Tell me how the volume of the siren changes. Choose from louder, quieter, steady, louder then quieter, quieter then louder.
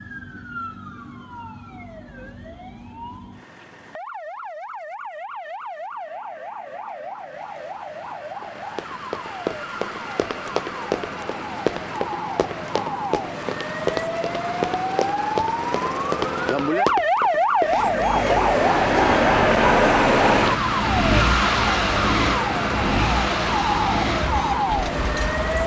louder.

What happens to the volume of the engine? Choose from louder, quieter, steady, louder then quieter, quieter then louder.
quieter.